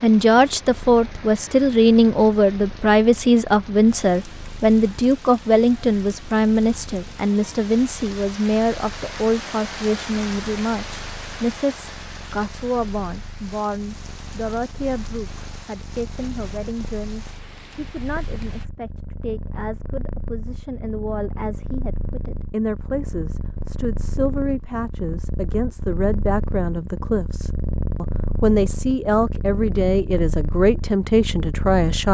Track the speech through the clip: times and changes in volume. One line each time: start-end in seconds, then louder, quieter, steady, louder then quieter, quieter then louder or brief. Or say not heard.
0.0-32.0 quieter then louder.